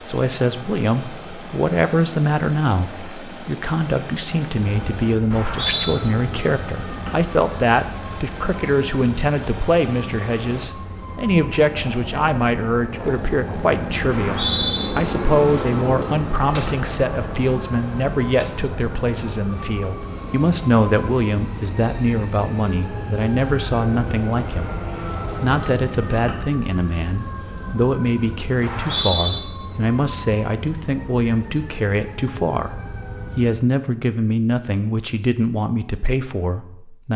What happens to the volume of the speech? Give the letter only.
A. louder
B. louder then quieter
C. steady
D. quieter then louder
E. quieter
C.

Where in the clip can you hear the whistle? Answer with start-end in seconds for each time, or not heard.
5.3-6.0, 14.1-14.8, 28.6-29.4.